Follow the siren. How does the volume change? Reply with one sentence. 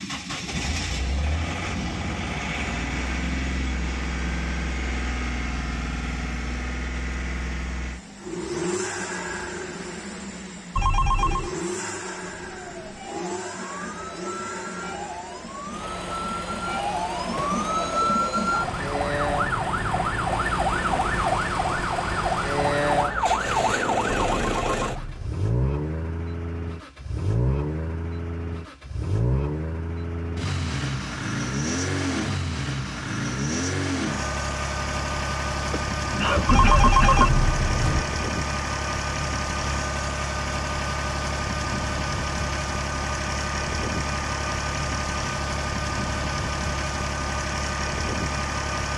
The loudness of the siren goes up.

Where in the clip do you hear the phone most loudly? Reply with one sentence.
The loudest moment of the phone is at 37 seconds.